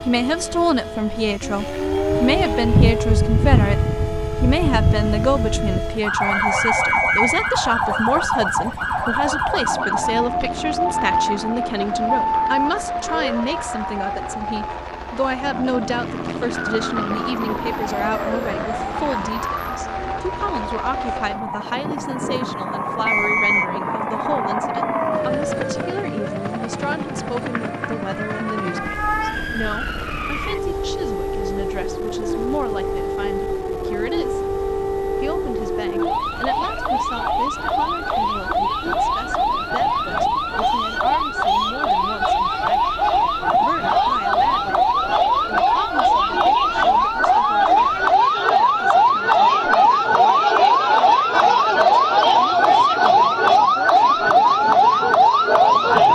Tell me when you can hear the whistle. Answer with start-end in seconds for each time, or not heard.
6.2-7.5, 23.1-23.7, 40.5-41.8.